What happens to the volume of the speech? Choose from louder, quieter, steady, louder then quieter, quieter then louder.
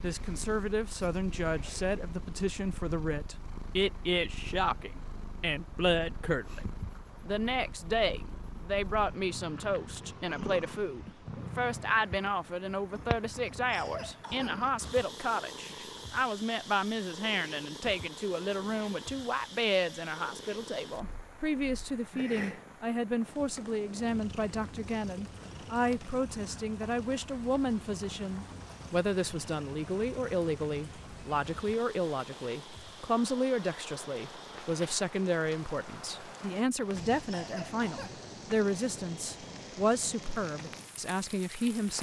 steady.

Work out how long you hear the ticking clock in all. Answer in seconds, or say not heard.
not heard.